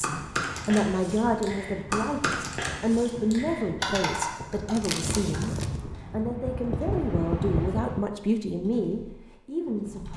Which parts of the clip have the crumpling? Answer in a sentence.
You can hear the crumpling from 4.7 to 5.8 s.